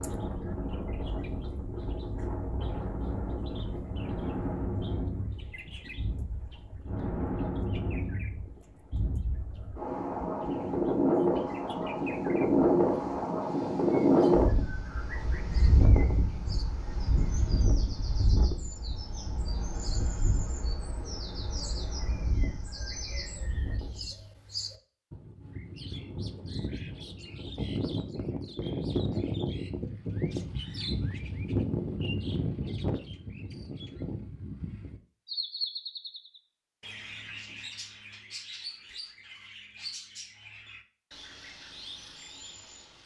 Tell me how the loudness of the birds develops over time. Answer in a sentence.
The loudness of the birds goes up, then down.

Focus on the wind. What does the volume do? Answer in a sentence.
The volume of the wind goes up, then down.